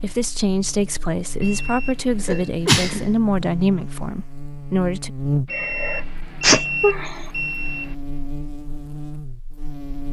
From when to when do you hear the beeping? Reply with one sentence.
You can hear the beeping from 1.4 to 2.4 s and from 5.5 to 8.0 s.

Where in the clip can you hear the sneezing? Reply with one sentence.
The sneezing can be heard from 2.2 to 3.1 s and from 5.5 to 7.2 s.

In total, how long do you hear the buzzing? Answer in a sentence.
The buzzing can be heard for 10 seconds in total.